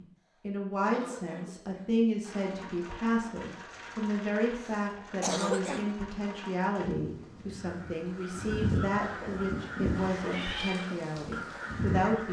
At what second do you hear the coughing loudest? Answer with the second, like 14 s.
5 s.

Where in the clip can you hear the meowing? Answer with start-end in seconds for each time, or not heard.
9.9-10.8.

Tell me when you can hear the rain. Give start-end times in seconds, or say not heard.
2.2-12.2.